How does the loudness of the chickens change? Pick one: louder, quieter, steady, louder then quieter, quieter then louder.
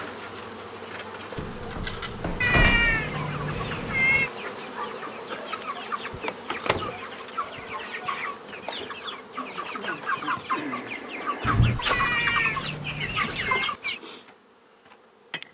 louder.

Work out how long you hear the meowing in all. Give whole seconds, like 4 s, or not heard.
4 s.